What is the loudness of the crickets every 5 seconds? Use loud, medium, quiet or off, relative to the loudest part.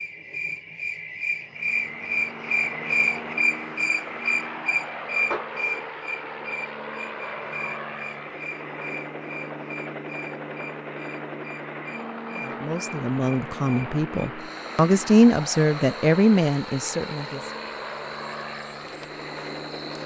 loud, medium, quiet, quiet.